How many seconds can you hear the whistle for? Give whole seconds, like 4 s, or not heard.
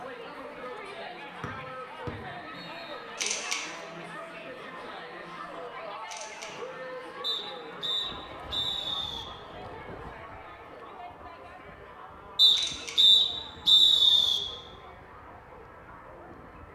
6 s.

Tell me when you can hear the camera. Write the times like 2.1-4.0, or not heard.
3.1-3.6, 6.0-6.5, 12.5-13.0.